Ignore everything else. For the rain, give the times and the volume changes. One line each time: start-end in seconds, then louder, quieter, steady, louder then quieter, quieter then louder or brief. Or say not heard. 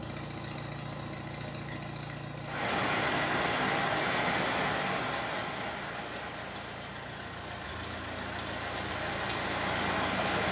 2.4-10.4 quieter then louder.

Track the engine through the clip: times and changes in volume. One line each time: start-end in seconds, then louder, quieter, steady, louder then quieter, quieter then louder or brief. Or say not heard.
0.0-10.4 quieter then louder.